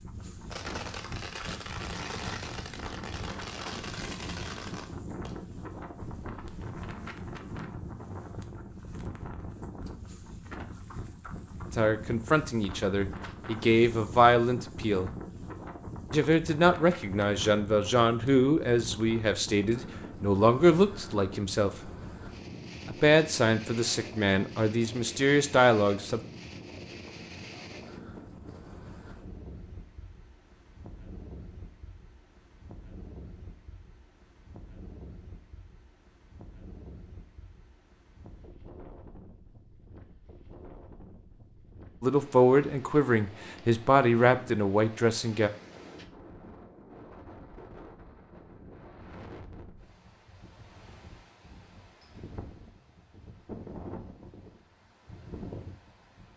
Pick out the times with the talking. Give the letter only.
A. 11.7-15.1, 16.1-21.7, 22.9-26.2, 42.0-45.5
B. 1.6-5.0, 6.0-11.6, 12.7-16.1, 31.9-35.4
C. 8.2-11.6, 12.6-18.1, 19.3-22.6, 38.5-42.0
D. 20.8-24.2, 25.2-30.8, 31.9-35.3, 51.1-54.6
A.